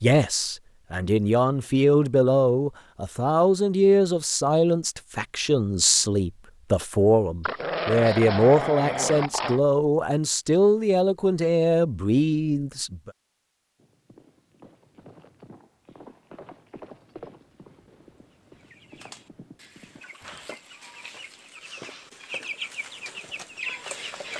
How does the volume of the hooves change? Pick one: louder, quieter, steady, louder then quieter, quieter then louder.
louder then quieter.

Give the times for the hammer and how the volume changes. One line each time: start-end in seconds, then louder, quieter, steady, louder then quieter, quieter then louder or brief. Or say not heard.
not heard.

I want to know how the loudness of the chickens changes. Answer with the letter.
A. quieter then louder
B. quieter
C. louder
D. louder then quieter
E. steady
C.